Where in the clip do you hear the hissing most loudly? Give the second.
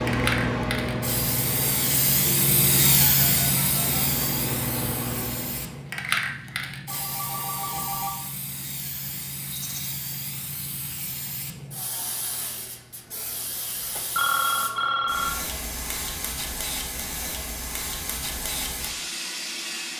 3 s.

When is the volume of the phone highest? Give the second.
14 s.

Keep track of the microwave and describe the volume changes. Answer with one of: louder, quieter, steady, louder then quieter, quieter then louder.
quieter then louder.